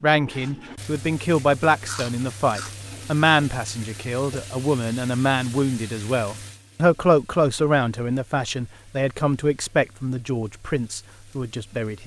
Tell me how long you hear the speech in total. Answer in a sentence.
You can hear the speech for 12 seconds altogether.